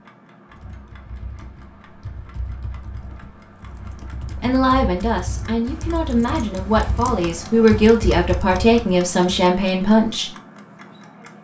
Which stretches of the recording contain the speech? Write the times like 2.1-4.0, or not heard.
4.3-10.3.